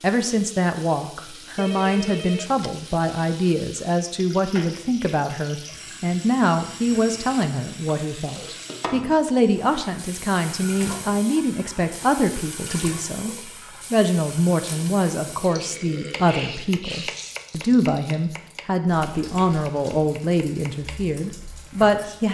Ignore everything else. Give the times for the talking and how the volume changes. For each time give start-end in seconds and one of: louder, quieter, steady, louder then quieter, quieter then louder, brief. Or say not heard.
0.0-22.2 steady.